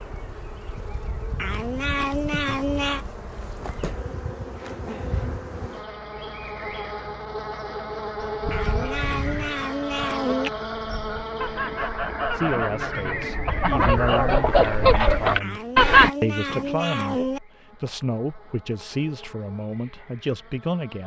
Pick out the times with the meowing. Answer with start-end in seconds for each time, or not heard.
1.4-3.0, 8.5-10.5, 15.4-17.4.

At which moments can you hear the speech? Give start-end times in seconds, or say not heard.
12.3-21.0.